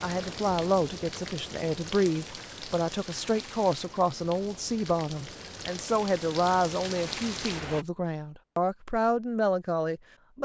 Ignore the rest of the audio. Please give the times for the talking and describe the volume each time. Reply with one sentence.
The talking can be heard from 0.0 to 10.4 s, at a steady volume.